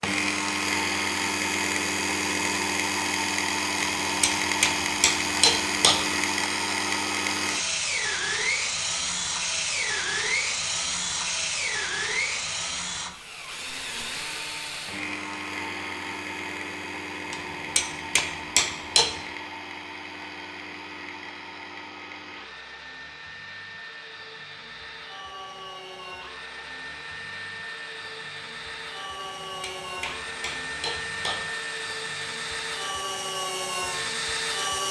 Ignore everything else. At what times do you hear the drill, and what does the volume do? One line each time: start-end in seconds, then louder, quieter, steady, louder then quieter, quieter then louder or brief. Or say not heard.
0.0-34.8 quieter then louder.